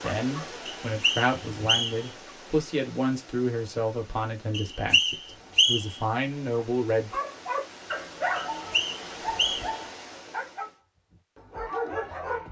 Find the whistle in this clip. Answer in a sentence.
The whistle can be heard from 0.7 to 2.1 s, from 4.5 to 6.0 s and from 8.3 to 9.8 s.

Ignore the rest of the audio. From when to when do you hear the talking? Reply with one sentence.
You can hear the talking from 0.0 to 7.2 s.